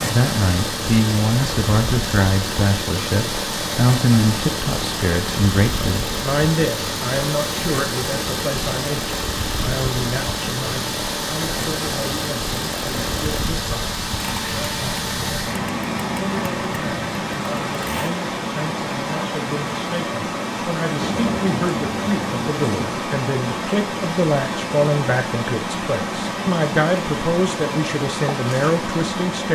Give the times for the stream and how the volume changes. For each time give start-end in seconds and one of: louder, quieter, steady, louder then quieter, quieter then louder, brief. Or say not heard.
0.0-29.5 steady.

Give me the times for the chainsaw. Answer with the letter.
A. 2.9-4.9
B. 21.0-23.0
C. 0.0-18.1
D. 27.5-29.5
C.